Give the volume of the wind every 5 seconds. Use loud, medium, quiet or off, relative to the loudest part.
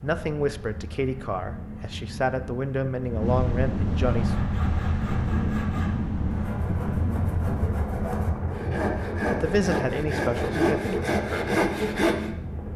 loud, loud, medium.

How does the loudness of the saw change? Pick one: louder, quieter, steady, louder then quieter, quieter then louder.
louder.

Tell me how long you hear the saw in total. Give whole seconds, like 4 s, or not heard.
8 s.